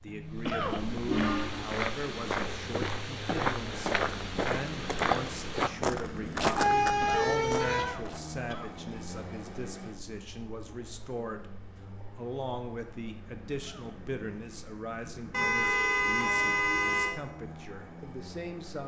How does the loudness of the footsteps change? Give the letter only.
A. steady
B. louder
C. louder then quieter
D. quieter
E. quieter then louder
B.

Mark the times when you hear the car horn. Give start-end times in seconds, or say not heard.
0.1-1.8, 6.5-8.0, 15.3-17.1.